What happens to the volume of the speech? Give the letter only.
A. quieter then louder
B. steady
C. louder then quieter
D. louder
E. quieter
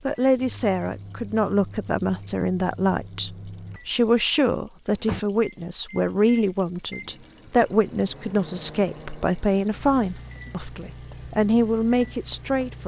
B.